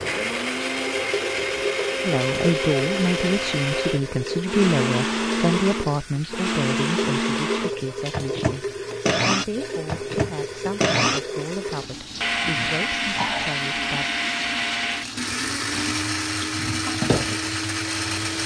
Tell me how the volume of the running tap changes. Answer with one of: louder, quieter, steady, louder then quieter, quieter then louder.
steady.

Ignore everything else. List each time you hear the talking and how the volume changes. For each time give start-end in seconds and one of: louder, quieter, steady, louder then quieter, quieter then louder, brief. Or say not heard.
2.0-14.1 quieter.